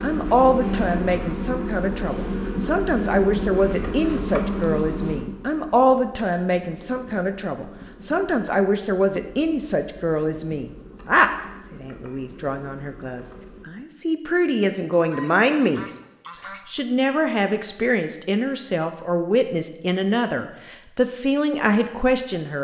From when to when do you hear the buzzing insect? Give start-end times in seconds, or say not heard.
0.0-13.7.